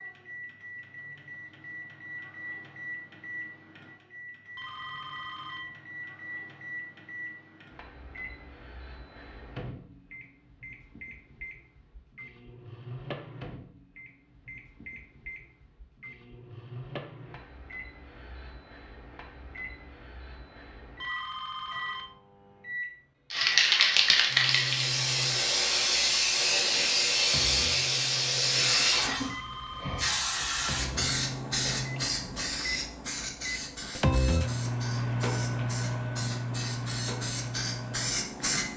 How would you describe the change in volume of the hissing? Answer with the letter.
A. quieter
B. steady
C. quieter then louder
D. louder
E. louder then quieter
A.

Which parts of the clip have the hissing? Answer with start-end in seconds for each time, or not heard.
23.3-38.7.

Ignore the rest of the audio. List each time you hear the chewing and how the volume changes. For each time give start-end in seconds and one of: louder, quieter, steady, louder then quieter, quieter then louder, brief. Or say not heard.
not heard.